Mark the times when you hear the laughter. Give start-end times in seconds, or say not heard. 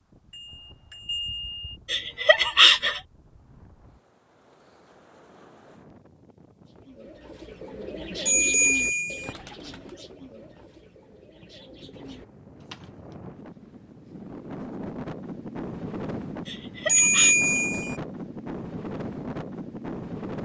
1.9-3.0, 16.4-17.4.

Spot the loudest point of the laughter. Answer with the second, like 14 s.
3 s.